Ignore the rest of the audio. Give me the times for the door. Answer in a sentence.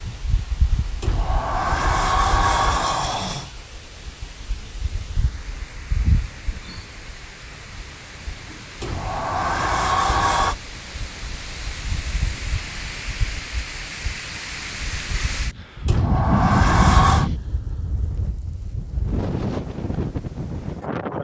You can hear the door from 1.0 to 3.5 s, from 8.8 to 10.6 s and from 15.8 to 17.3 s.